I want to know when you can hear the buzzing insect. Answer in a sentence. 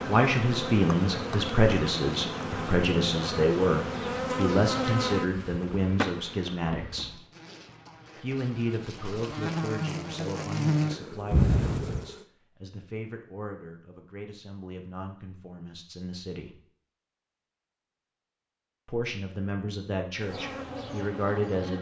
The buzzing insect can be heard from 0.0 to 12.2 s and from 20.2 to 21.7 s.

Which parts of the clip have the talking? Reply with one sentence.
You can hear the talking from 0.1 to 7.2 s, from 8.2 to 16.6 s and from 18.9 to 21.7 s.